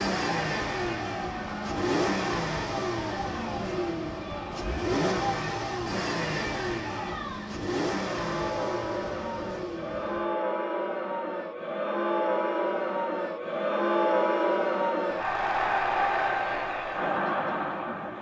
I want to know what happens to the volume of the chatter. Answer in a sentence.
The volume of the chatter goes up.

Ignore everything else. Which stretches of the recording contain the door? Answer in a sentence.
The door can't be heard in this clip.